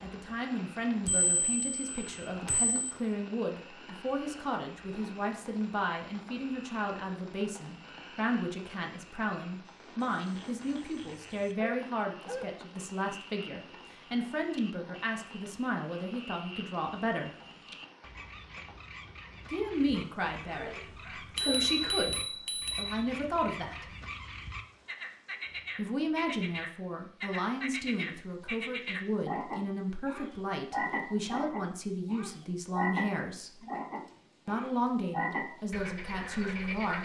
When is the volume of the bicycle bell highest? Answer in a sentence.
The volume of the bicycle bell peaks at 22 seconds.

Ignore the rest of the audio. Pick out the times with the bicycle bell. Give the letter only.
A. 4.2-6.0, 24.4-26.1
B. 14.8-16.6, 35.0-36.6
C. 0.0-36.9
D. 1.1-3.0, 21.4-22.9
D.